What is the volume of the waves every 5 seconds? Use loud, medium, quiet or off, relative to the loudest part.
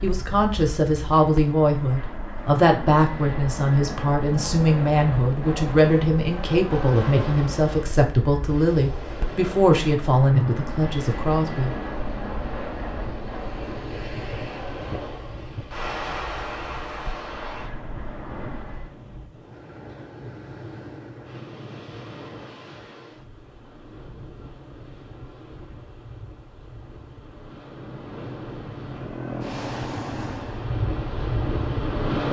off, medium, medium, medium, quiet, quiet, loud.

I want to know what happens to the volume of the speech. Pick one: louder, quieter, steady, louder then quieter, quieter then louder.
steady.